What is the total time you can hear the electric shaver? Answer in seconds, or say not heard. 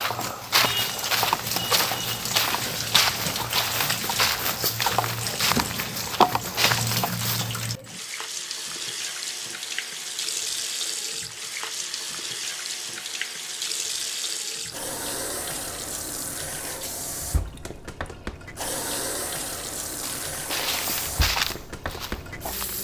not heard.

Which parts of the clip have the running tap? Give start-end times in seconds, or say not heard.
0.0-22.7.